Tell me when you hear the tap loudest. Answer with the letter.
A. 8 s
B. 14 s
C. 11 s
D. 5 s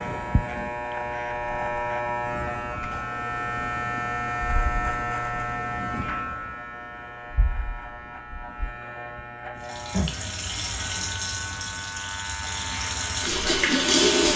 B.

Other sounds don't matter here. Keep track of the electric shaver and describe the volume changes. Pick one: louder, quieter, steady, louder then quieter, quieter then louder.
quieter.